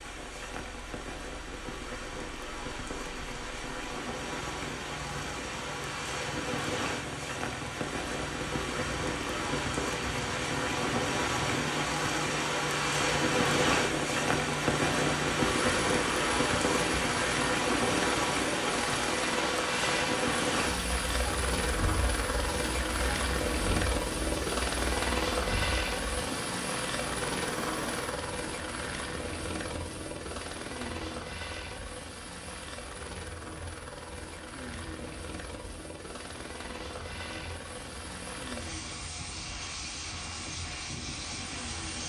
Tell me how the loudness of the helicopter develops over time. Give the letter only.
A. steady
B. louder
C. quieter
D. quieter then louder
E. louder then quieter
E.